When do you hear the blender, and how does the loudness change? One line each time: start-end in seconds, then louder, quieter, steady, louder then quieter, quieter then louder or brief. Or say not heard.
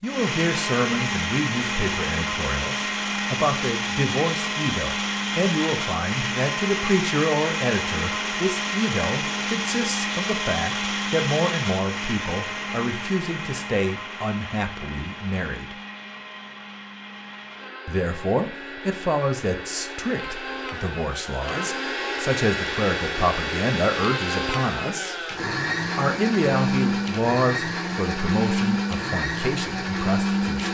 0.0-30.6 quieter then louder.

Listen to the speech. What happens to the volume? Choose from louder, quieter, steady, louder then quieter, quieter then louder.
steady.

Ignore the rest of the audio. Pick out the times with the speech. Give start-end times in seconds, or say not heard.
0.0-15.8, 17.9-25.1, 25.9-30.6.